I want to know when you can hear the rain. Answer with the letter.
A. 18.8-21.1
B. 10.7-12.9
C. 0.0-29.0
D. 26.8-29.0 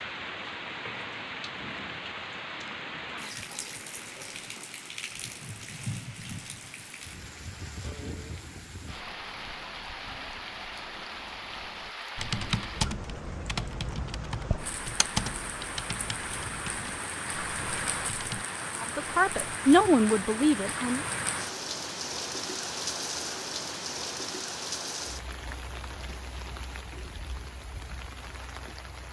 C.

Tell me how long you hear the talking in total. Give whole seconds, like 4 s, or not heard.
2 s.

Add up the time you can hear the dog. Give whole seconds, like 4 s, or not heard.
not heard.